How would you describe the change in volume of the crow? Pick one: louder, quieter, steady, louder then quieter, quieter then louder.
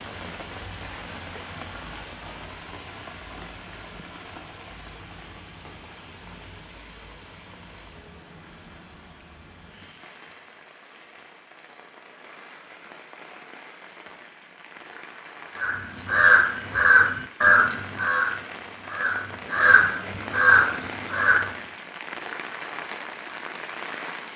quieter then louder.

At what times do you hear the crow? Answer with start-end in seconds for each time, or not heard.
15.6-21.6.